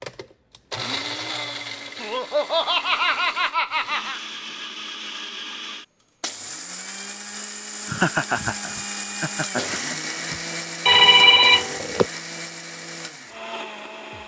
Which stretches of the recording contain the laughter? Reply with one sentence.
You can hear the laughter from 2.0 to 4.2 s and from 7.8 to 10.4 s.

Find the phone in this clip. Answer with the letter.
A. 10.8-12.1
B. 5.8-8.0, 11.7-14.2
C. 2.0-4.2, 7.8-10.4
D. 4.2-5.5
A.